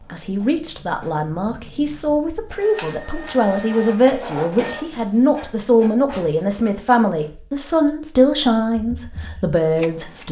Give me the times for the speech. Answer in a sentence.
You can hear the speech from 0.1 to 10.2 s.